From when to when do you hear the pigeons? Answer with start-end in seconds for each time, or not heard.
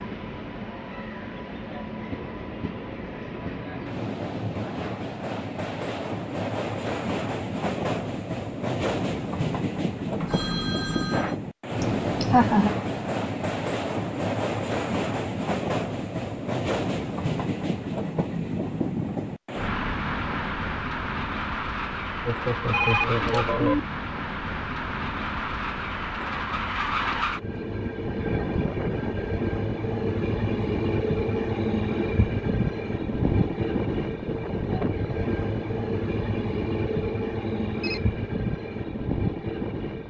not heard.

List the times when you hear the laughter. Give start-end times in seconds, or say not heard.
11.8-12.7, 22.2-23.8.